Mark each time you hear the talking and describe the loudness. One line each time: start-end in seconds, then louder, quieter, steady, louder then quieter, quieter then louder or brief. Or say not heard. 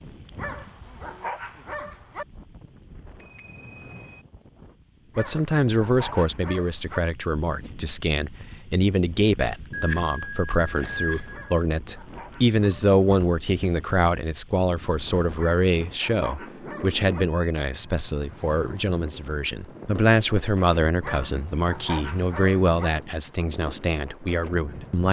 5.2-25.0 steady.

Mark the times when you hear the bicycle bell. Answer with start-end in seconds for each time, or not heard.
3.2-4.2, 9.7-11.7, 17.1-17.7.